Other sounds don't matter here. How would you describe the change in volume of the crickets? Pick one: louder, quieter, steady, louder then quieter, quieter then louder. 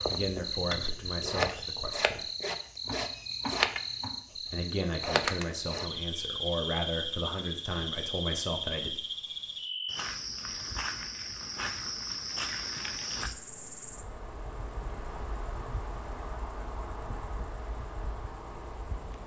quieter.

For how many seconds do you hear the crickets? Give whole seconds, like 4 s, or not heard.
19 s.